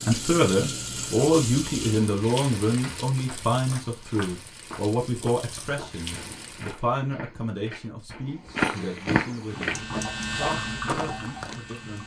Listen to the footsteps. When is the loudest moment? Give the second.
9 s.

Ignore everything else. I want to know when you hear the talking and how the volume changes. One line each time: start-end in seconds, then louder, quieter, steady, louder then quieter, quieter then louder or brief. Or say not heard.
0.1-12.0 quieter.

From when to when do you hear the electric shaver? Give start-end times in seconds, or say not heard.
9.4-12.0.